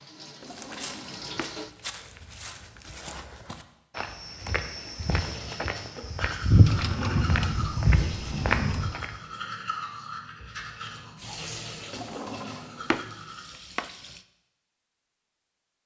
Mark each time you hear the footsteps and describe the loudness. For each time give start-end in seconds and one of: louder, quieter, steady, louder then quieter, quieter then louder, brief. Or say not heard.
0.5-9.2 louder.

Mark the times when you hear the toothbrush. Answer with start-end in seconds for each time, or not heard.
5.1-13.4.